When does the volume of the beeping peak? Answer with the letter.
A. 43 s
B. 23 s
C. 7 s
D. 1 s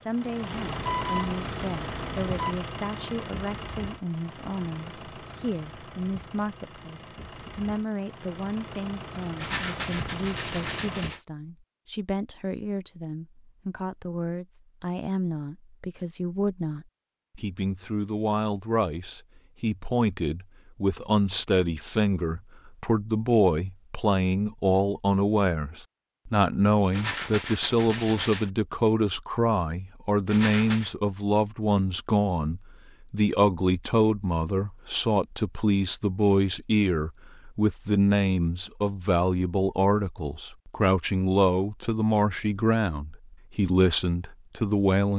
D.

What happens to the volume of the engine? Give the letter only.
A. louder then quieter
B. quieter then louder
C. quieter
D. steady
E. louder
B.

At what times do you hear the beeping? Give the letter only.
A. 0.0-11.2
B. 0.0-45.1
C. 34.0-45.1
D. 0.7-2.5
D.